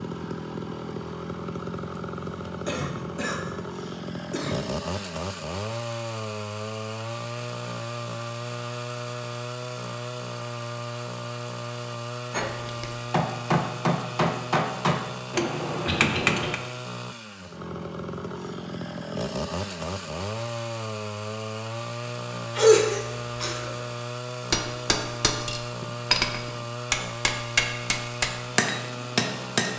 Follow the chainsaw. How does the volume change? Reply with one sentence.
The volume of the chainsaw stays about the same.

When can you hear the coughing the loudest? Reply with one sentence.
The loudest moment of the coughing is at 23 seconds.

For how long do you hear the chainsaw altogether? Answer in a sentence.
You can hear the chainsaw for 30 seconds altogether.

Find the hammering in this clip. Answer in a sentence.
You can hear the hammering from 12.3 to 16.6 s and from 24.5 to 29.7 s.